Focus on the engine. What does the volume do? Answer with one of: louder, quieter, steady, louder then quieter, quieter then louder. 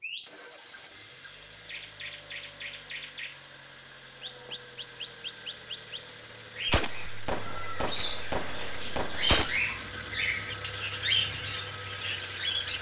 louder.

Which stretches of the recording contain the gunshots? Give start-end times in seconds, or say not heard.
6.7-9.6.